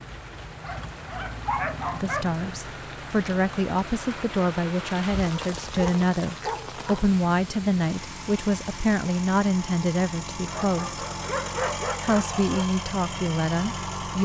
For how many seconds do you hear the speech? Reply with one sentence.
The speech can be heard for 11 seconds in total.